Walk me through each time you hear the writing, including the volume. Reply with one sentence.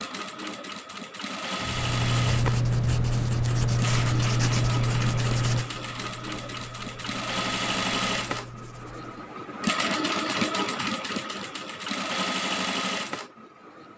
You can hear the writing from 1.6 to 9.3 s, getting quieter.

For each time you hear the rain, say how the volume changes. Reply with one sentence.
You can't hear the rain here.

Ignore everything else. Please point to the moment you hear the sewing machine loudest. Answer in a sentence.
The volume of the sewing machine peaks at 10 seconds.